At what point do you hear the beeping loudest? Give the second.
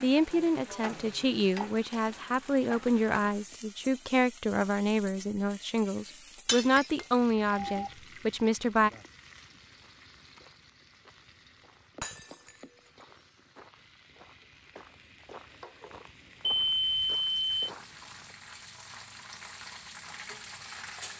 17 s.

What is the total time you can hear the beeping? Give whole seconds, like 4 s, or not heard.
2 s.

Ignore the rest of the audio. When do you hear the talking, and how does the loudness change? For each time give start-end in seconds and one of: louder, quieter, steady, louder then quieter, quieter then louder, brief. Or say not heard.
0.0-8.9 steady.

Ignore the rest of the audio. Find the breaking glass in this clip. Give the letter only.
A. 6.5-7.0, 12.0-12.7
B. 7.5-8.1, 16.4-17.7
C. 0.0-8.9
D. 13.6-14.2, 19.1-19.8
A.